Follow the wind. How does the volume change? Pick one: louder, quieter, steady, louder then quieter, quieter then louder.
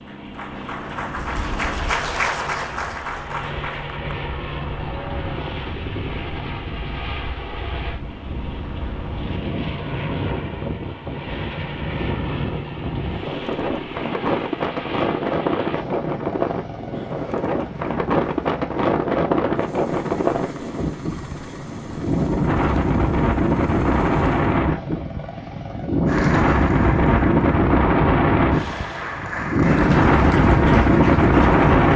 louder.